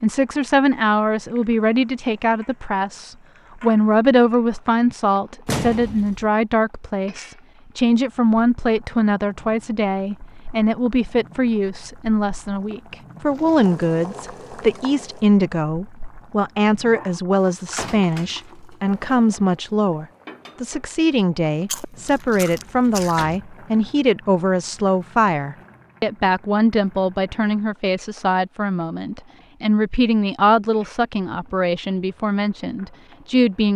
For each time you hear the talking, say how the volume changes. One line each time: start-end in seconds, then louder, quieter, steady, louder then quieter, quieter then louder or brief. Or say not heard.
0.0-33.7 steady.